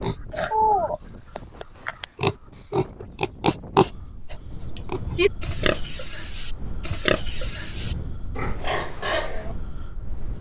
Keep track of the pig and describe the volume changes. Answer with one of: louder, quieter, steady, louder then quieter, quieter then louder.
quieter.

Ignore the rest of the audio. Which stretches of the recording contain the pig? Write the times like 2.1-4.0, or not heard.
0.0-9.6.